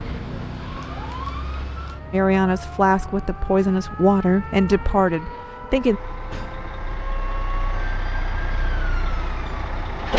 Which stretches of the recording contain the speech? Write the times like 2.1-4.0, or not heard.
2.1-6.0.